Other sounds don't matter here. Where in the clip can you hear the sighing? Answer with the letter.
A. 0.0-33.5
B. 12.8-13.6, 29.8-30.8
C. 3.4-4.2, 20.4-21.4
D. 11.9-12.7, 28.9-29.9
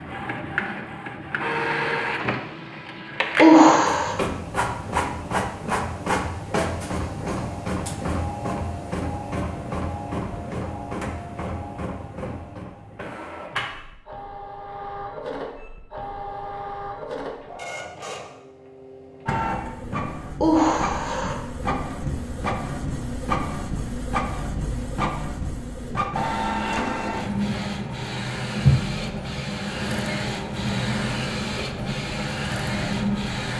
C.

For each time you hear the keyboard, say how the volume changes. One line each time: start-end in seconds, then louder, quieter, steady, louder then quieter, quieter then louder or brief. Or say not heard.
not heard.